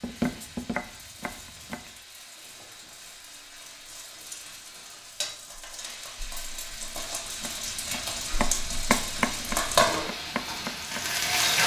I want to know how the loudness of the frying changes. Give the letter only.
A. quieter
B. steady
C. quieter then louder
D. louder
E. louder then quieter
D.